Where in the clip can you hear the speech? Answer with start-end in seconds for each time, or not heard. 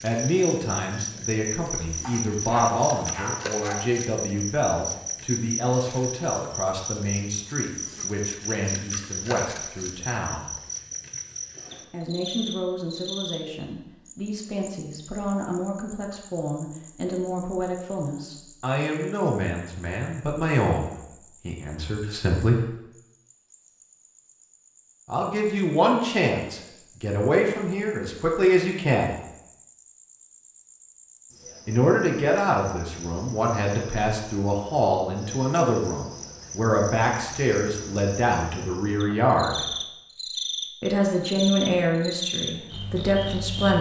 0.0-10.6, 11.9-22.6, 25.1-29.2, 31.6-39.6, 40.8-43.7.